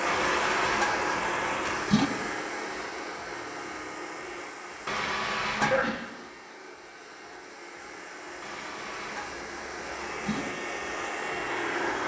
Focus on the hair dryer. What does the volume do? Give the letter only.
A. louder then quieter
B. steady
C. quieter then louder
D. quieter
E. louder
C.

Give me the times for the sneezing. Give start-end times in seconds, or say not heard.
5.6-6.2.